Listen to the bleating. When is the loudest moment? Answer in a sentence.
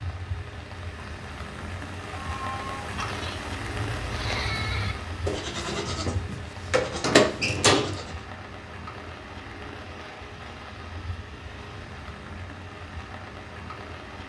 The loudest moment of the bleating is at 7 seconds.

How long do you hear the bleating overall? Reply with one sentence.
The bleating can be heard for 6 seconds in total.